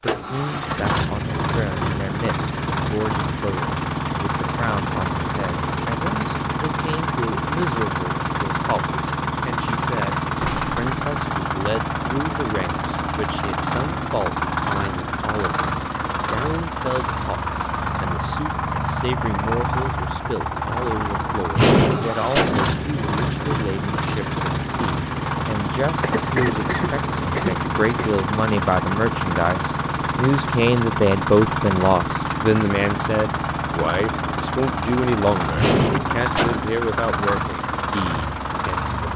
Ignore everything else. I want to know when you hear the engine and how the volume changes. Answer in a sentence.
You can hear the engine from 0.0 to 39.1 s, at a steady volume.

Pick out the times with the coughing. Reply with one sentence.
The coughing can be heard from 26.0 to 28.1 s.